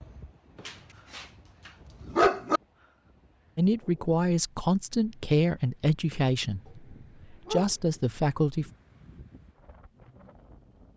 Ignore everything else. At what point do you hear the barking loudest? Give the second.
2 s.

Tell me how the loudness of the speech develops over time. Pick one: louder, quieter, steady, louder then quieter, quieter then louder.
quieter then louder.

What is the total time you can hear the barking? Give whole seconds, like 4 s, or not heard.
4 s.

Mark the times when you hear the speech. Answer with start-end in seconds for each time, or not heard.
3.5-8.7.